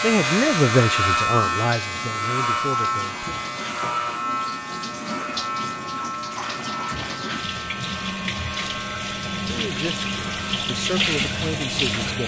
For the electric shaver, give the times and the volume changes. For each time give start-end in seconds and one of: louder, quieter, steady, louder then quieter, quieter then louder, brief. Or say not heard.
0.0-12.2 quieter.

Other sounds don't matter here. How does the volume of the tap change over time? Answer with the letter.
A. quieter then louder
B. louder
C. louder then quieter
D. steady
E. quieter
B.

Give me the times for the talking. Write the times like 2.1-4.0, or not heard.
0.0-3.3, 9.4-12.2.